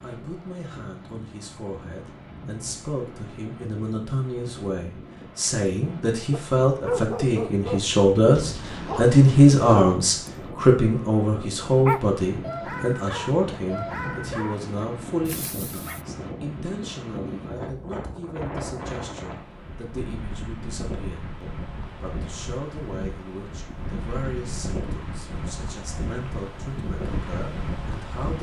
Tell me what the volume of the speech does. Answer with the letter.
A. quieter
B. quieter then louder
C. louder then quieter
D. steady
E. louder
C.